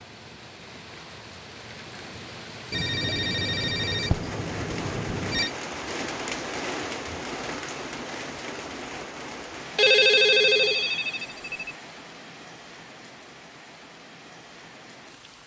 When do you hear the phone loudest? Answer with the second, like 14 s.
10 s.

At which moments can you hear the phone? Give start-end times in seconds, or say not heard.
2.7-5.5, 9.8-11.8.